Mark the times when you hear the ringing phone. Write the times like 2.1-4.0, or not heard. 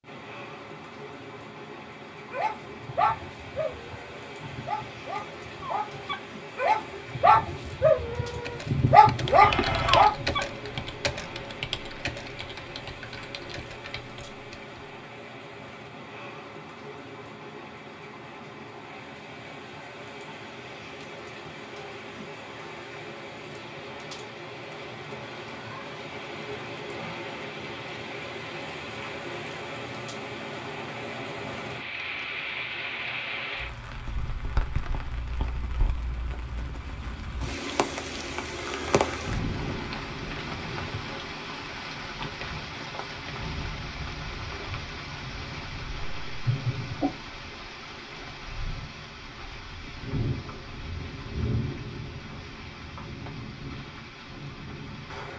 9.3-10.1, 46.0-47.1.